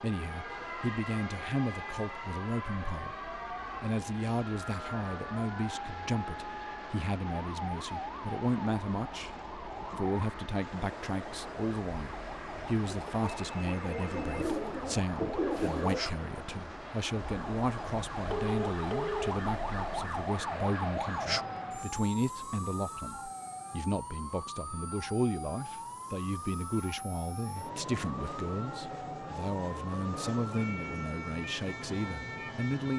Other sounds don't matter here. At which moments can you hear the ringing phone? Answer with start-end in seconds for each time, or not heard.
12.9-14.4, 18.2-19.4.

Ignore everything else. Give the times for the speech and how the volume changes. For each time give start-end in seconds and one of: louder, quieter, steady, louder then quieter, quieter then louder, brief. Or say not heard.
0.0-32.9 steady.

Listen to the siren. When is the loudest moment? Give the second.
21 s.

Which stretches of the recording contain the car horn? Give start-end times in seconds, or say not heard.
not heard.